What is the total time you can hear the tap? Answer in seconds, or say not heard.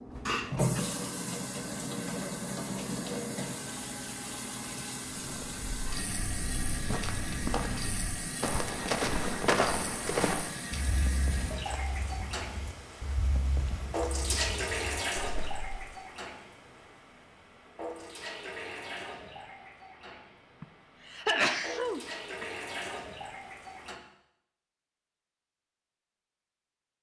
24 s.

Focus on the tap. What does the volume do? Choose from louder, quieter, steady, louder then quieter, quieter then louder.
quieter.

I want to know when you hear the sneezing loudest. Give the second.
21 s.